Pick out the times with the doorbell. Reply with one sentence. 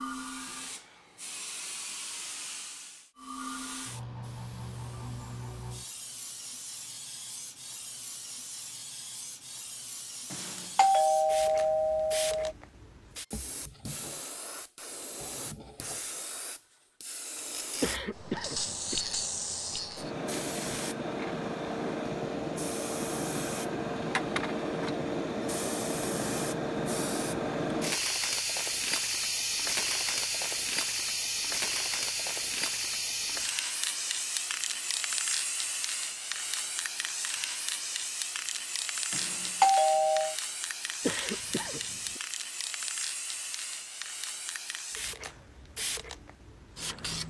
You can hear the doorbell from 10.3 to 12.6 s and from 39.1 to 40.4 s.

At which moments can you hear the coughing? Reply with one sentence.
You can hear the coughing from 17.8 to 19.1 s and from 41.0 to 42.2 s.